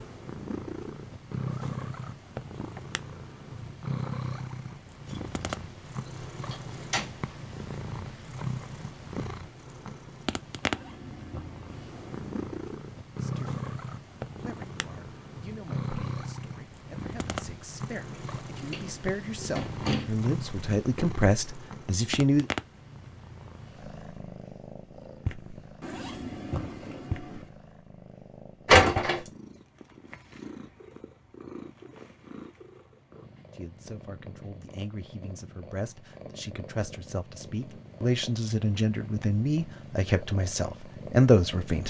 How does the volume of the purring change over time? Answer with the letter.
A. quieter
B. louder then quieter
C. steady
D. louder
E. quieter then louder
A.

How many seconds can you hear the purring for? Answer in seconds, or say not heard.
42 s.